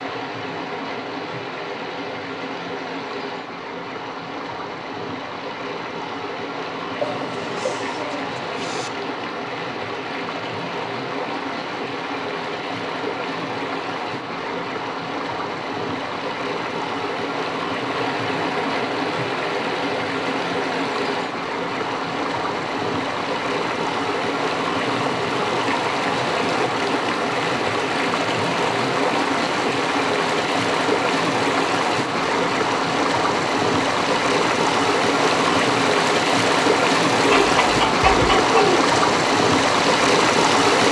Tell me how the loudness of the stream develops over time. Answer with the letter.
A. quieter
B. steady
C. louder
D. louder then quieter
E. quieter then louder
C.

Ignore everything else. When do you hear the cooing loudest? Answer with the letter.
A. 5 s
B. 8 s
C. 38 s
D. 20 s
C.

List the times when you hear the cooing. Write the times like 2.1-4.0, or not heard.
7.0-8.9, 37.2-38.9.